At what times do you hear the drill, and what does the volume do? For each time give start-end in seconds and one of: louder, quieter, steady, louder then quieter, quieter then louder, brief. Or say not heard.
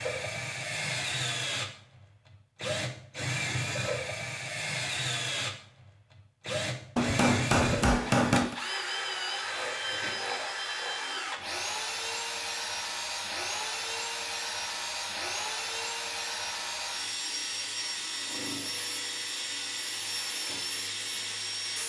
0.0-21.8 steady.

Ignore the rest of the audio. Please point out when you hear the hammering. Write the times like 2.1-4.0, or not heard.
7.0-8.6.